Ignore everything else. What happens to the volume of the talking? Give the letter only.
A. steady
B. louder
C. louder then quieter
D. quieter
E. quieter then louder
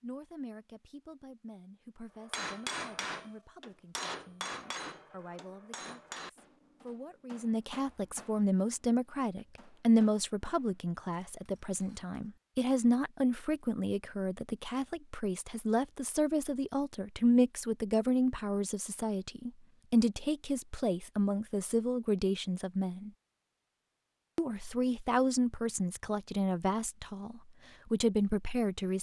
B.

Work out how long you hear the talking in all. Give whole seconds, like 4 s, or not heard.
28 s.